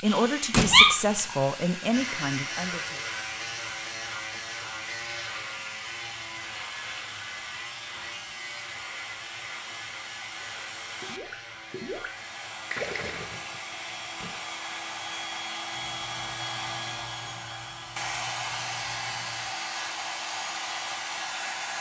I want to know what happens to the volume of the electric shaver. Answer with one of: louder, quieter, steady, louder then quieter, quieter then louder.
quieter.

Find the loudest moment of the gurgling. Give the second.
13 s.